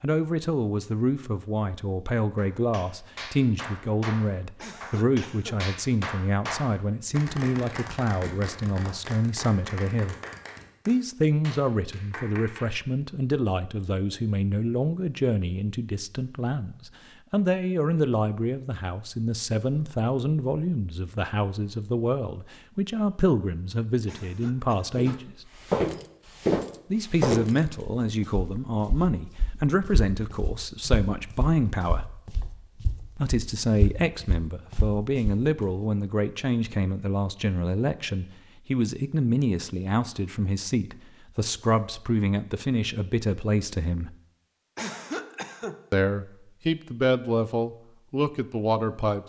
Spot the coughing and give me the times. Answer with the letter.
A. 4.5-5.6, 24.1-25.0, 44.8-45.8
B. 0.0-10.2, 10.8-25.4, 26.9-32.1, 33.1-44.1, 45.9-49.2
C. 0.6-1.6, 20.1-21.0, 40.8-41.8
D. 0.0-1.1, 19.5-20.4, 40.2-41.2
A.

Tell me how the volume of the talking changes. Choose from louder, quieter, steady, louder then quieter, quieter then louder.
steady.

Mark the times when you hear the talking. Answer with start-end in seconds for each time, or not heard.
0.0-10.2, 10.8-25.4, 26.9-32.1, 33.1-44.1, 45.9-49.2.